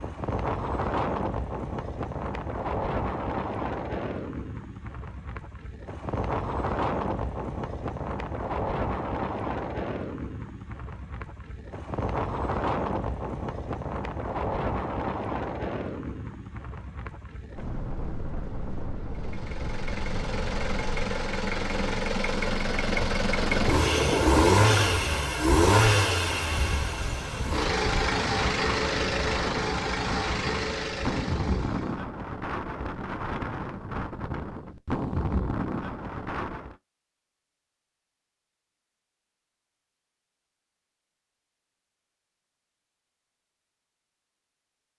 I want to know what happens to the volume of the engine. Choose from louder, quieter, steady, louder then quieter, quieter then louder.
louder then quieter.